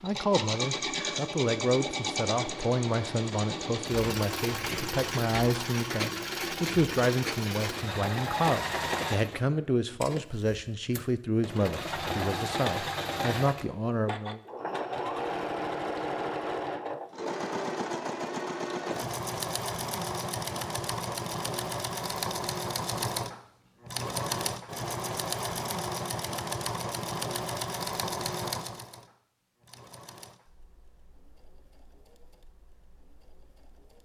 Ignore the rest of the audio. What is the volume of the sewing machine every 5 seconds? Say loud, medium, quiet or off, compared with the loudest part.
loud, loud, loud, loud, loud, loud, quiet.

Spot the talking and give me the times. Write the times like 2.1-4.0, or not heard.
0.0-14.4.